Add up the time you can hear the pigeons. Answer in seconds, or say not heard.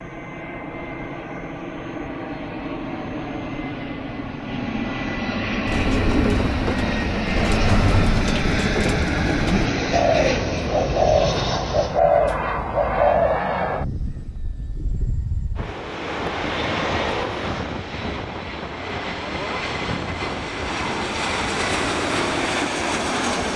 8 s.